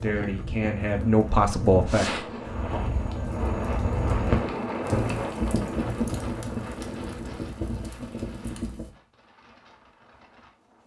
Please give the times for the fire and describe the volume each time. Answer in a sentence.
The fire can be heard from 0.1 to 8.9 s, getting louder then quieter.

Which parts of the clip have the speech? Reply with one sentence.
The speech can be heard from 0.0 to 2.6 s.